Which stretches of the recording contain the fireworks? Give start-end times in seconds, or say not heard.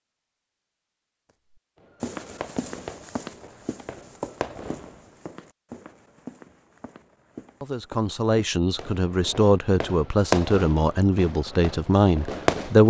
1.8-5.0, 8.8-12.8.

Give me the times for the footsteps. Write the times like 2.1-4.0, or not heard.
2.0-8.6.